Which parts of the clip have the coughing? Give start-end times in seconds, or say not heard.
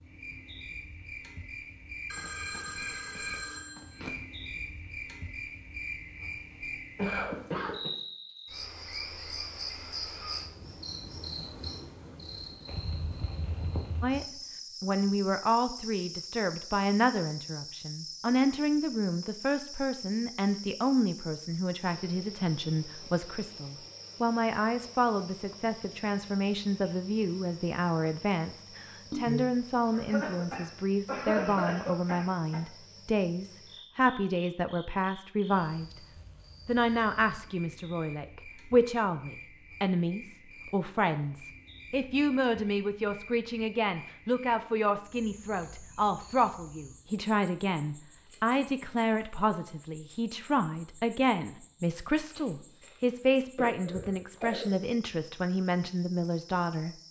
7.0-7.9, 29.9-32.6, 53.5-54.7.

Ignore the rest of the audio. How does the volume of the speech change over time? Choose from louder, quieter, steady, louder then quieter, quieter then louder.
steady.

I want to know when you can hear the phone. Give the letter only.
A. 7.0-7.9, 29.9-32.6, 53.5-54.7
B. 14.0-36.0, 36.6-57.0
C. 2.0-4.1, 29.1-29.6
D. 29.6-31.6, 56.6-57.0
C.